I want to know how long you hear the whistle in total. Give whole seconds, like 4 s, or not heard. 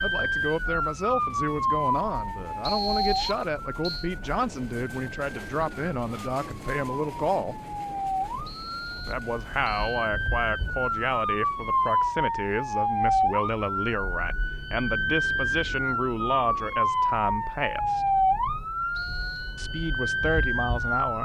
4 s.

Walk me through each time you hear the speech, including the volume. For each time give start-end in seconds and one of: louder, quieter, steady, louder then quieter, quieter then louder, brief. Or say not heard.
0.0-7.5 steady
9.1-18.1 steady
19.6-21.2 brief.